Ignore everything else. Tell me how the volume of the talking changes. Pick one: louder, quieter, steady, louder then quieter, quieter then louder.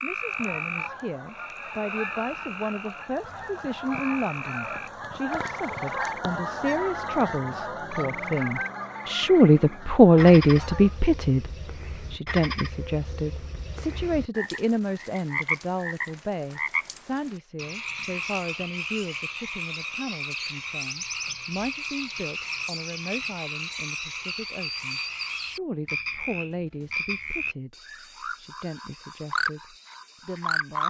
louder then quieter.